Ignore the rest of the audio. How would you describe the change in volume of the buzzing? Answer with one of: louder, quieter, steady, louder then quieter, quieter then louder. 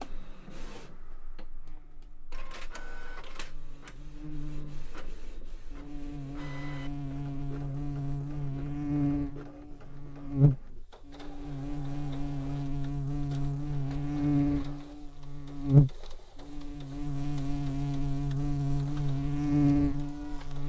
louder.